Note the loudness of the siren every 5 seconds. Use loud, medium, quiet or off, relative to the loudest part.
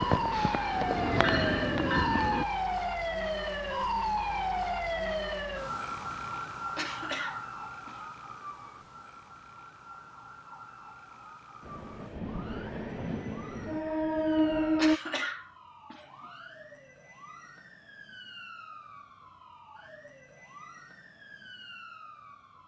loud, medium, quiet, quiet, quiet.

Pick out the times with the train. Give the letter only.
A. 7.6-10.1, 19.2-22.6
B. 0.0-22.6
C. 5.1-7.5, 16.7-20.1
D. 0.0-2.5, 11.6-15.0
D.